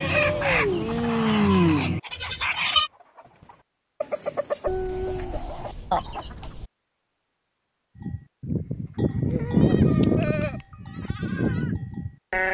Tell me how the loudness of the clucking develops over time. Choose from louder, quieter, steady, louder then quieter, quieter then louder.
quieter then louder.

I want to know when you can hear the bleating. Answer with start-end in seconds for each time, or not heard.
0.0-2.9, 8.0-12.4.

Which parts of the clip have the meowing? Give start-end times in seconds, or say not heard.
0.1-1.1, 4.7-6.7, 9.3-10.7.